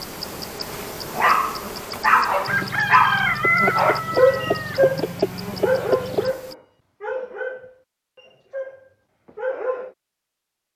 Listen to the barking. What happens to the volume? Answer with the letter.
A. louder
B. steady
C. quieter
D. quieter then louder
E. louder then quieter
C.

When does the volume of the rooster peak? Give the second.
4 s.